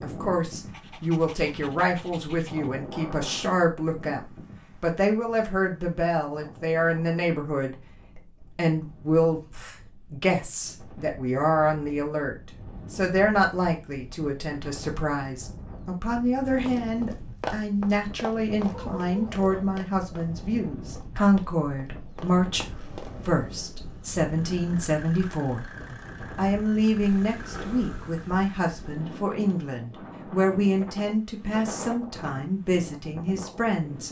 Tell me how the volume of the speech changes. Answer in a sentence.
The volume of the speech stays about the same.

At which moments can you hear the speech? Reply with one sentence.
The speech can be heard from 0.0 to 34.0 s.